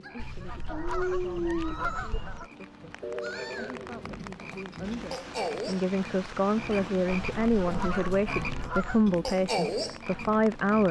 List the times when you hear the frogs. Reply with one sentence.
You can hear the frogs from 0.0 to 10.8 s.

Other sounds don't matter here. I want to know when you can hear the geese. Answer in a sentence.
The geese can be heard from 0.1 to 2.5 s and from 7.1 to 9.1 s.